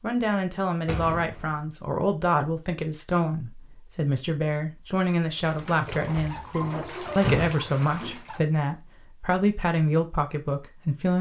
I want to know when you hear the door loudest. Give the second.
7 s.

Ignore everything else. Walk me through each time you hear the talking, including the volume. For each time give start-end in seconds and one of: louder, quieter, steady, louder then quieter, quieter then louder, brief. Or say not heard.
0.0-11.1 steady.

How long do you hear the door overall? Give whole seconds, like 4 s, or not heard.
2 s.